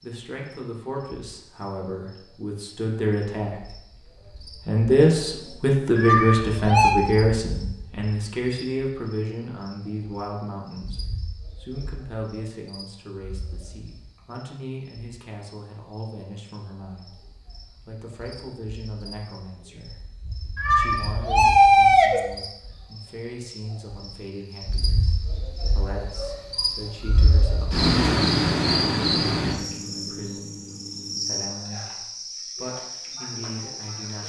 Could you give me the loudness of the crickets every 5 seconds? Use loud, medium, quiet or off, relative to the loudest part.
quiet, quiet, quiet, quiet, quiet, loud, medium.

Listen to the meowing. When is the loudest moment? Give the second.
22 s.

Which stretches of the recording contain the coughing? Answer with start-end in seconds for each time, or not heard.
not heard.